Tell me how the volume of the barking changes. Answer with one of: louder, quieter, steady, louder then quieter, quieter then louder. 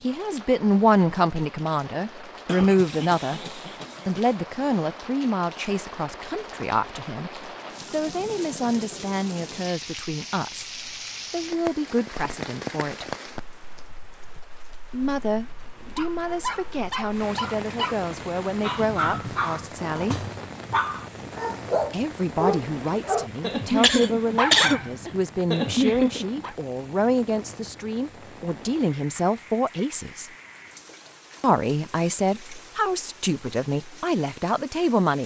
louder.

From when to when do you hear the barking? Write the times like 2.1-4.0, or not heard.
15.9-26.6.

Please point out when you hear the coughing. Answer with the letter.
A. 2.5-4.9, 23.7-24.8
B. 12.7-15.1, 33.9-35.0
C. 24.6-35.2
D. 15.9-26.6
A.